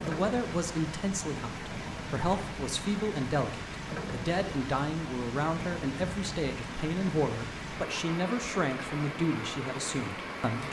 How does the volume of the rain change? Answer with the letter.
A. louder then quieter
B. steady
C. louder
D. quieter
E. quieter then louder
B.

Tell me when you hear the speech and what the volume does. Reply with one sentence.
You can hear the speech from 0.0 to 10.6 s, at a steady volume.